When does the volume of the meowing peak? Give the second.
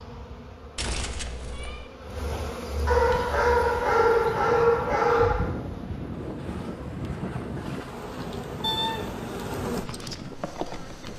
9 s.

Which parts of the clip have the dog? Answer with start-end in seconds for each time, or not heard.
2.9-5.5.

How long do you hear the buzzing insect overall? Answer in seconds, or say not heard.
11 s.